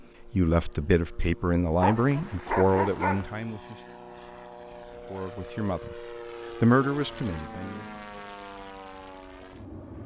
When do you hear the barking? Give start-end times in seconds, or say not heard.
1.8-3.2.